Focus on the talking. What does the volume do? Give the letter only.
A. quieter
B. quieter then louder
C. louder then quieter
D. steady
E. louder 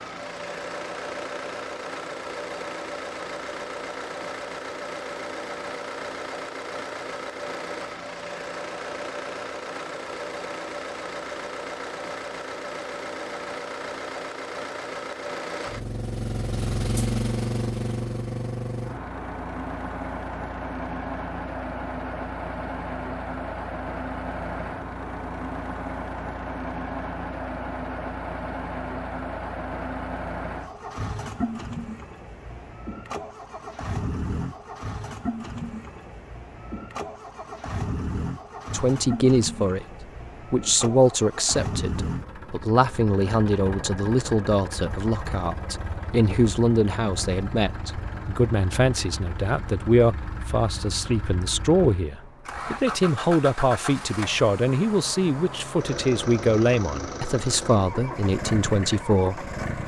D.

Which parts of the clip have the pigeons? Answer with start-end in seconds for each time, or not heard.
not heard.